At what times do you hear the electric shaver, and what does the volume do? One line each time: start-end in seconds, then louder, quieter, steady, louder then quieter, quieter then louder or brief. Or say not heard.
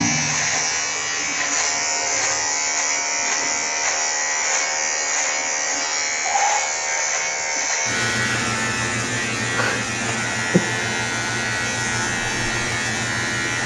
0.0-13.6 steady.